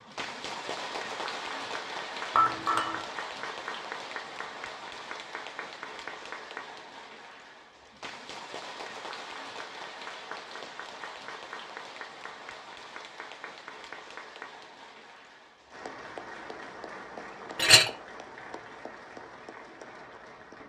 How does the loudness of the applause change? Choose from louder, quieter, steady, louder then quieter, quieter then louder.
quieter.